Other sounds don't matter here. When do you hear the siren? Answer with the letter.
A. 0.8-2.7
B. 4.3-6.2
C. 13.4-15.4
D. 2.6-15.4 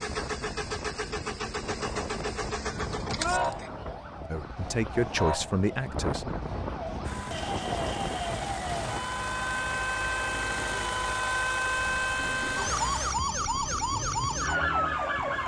D.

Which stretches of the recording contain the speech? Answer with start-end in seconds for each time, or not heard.
4.3-6.2.